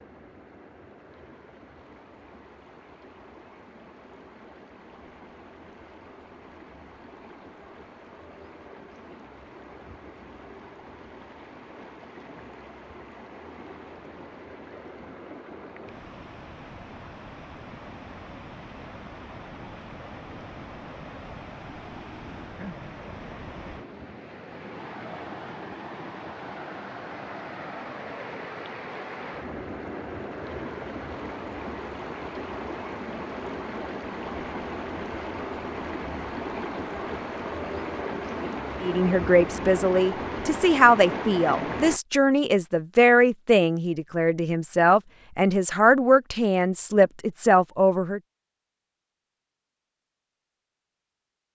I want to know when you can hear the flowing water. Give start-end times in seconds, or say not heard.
0.0-42.0.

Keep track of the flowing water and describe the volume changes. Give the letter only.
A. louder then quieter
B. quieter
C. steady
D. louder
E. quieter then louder
D.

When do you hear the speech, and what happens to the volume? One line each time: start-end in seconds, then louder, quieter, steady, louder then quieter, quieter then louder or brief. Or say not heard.
38.8-48.2 steady.